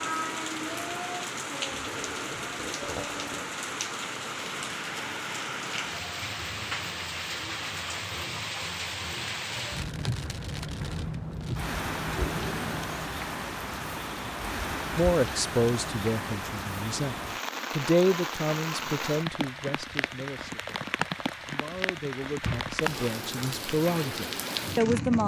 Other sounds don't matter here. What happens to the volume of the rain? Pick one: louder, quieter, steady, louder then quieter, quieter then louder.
steady.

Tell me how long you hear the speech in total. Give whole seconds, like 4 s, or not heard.
10 s.